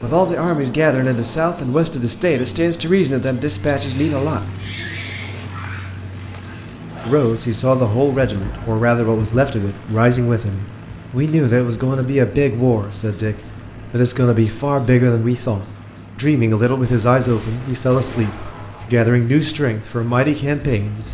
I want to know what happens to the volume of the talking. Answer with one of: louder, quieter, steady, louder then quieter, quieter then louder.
steady.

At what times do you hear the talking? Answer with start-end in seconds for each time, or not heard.
0.0-4.5, 7.0-21.0.